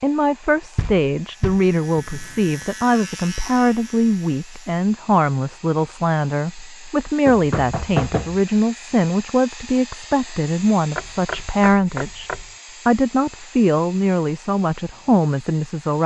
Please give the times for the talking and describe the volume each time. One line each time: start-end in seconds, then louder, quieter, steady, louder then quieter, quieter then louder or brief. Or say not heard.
0.0-16.0 steady.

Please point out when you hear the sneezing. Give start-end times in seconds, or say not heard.
not heard.